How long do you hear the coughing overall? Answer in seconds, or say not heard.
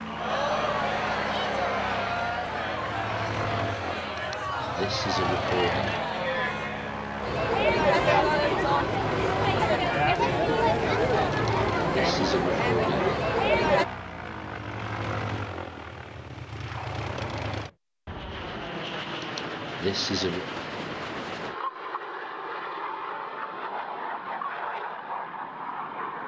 5 s.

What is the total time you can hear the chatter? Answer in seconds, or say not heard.
14 s.